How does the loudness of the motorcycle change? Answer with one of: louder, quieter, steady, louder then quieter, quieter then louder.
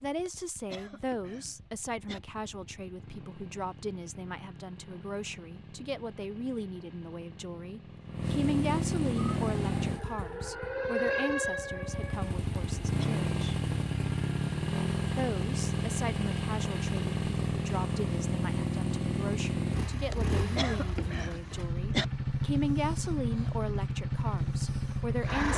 louder.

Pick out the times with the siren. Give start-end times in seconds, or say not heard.
9.3-12.3.